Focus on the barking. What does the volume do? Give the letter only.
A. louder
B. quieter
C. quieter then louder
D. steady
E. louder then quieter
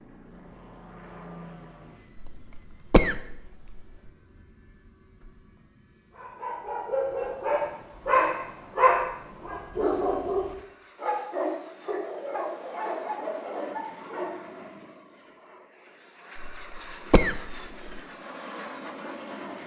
B.